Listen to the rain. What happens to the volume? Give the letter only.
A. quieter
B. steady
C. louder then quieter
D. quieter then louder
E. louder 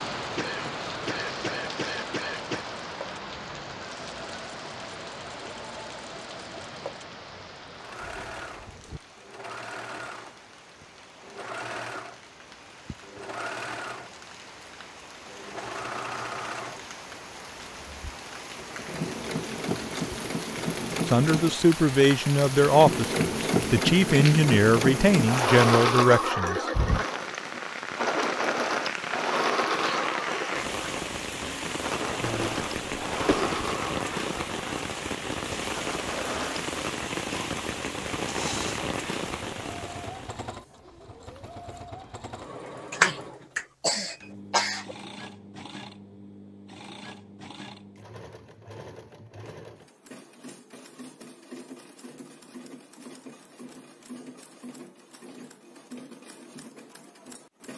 D.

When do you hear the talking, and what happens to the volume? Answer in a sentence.
The talking can be heard from 21.1 to 26.6 s, at a steady volume.